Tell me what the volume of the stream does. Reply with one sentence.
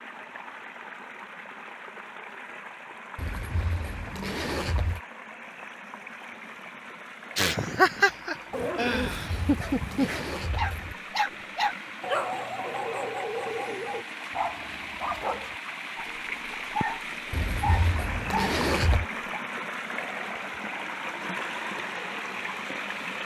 The loudness of the stream goes up.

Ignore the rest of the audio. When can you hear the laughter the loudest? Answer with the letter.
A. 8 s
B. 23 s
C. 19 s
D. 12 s
A.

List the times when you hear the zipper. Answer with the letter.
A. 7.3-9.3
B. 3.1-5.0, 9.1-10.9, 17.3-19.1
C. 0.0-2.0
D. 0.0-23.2
B.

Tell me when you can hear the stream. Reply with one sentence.
You can hear the stream from 0.0 to 23.2 s.